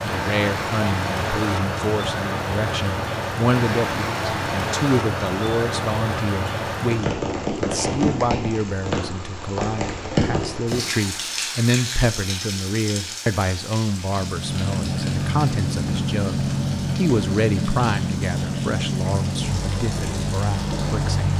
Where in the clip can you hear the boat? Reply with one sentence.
You can hear the boat from 14.1 to 21.3 s.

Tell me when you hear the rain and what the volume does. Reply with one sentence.
You can hear the rain from 0.0 to 21.3 s, getting quieter.